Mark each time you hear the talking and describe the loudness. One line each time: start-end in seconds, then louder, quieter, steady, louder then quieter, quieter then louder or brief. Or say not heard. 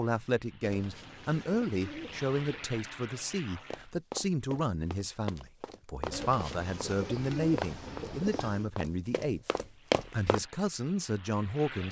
0.0-9.5 steady
10.1-11.8 brief.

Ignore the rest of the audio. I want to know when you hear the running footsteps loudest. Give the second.
10 s.